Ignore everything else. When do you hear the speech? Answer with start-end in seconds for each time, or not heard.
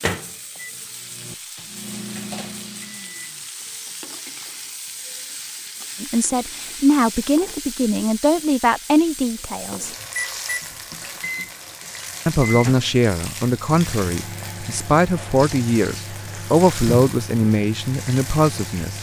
6.0-9.9, 12.2-18.9.